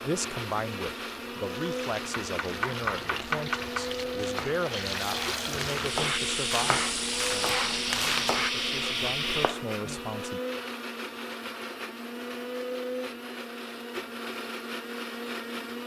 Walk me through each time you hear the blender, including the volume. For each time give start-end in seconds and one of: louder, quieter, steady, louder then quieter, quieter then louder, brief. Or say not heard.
0.0-15.8 steady.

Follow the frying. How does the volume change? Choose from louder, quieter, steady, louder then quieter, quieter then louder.
louder.